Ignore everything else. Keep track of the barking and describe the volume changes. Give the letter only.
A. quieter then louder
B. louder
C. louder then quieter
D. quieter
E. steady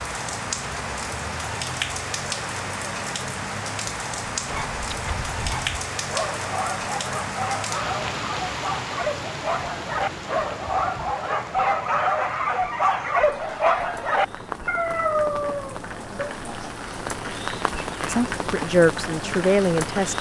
B.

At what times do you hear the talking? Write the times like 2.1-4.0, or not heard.
18.1-20.1.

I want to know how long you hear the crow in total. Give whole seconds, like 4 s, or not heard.
not heard.